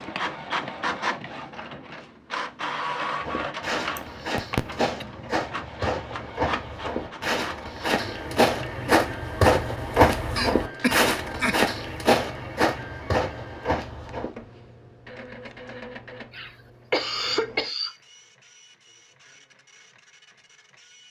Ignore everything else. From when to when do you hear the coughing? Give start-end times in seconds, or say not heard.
4.0-5.0, 10.3-11.6, 16.3-17.9.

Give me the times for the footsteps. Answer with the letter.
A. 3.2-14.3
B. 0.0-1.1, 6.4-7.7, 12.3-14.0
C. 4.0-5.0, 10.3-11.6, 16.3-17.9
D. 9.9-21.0
A.